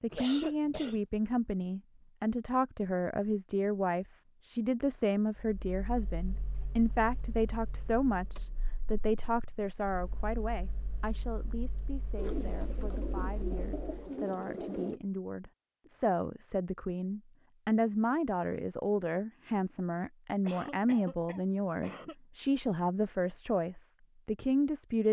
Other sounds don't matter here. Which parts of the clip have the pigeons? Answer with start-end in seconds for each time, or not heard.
12.1-15.0.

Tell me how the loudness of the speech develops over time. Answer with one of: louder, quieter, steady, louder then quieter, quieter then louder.
quieter then louder.